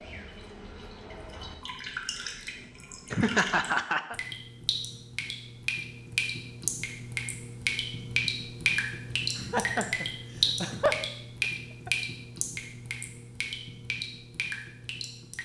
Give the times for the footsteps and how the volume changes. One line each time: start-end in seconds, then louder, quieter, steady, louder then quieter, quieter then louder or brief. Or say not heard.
not heard.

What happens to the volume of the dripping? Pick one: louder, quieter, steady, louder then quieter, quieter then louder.
louder then quieter.